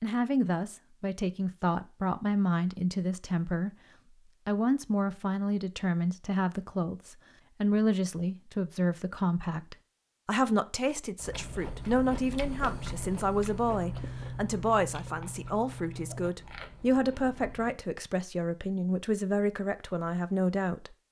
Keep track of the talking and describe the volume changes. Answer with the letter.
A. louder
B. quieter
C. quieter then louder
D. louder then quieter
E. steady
E.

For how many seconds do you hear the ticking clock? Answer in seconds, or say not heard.
not heard.